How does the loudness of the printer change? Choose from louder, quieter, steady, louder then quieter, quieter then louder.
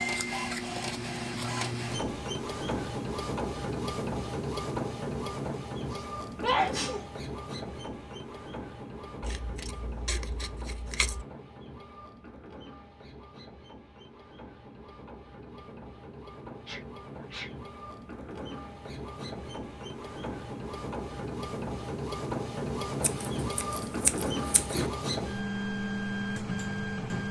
quieter then louder.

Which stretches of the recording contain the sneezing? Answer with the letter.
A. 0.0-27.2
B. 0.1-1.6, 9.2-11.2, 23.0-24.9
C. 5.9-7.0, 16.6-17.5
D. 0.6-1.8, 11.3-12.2
C.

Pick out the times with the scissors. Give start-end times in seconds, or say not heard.
0.1-1.6, 9.2-11.2, 23.0-24.9.